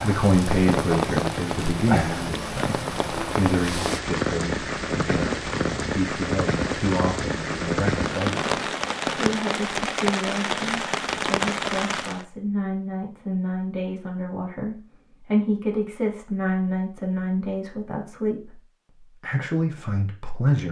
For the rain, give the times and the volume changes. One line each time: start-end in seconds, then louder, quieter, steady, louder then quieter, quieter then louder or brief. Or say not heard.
0.0-12.2 steady.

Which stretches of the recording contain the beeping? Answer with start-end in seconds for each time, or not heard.
not heard.